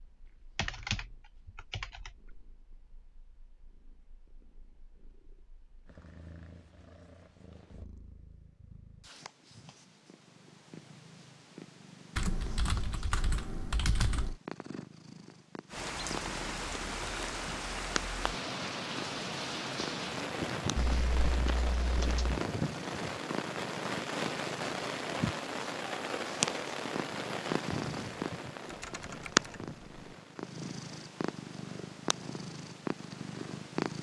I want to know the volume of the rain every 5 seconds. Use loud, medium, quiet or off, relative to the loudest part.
off, off, off, loud, loud, loud, quiet.